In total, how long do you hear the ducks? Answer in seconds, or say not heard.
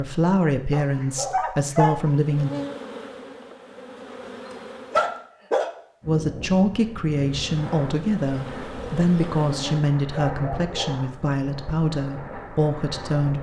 not heard.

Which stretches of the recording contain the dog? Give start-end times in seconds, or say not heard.
0.7-2.1, 4.9-5.7, 9.9-11.3.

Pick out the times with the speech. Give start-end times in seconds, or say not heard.
0.0-2.5, 6.0-13.3.